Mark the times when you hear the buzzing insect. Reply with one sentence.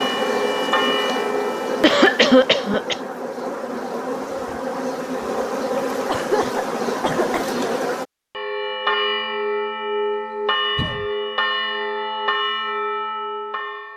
The buzzing insect can be heard from 0.0 to 8.1 s.